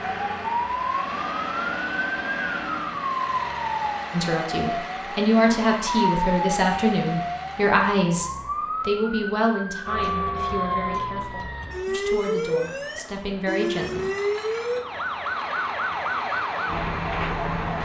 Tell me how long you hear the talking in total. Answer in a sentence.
You can hear the talking for 10 seconds altogether.